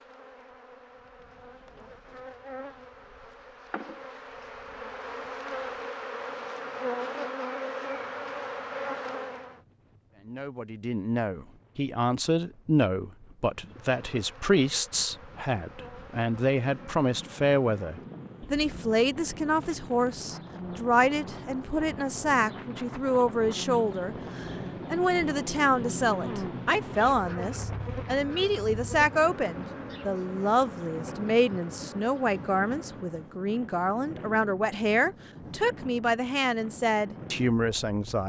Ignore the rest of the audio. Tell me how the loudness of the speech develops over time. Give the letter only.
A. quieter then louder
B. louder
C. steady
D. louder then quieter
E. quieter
C.